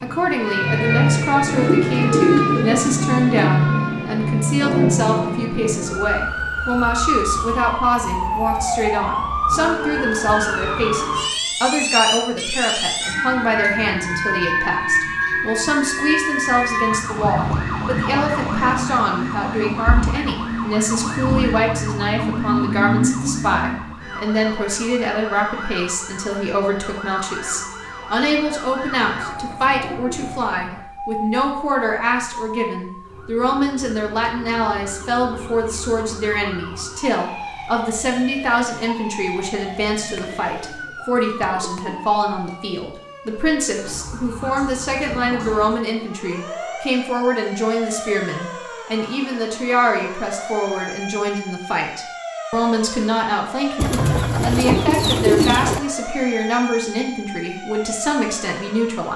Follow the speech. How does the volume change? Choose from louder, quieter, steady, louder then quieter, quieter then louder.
steady.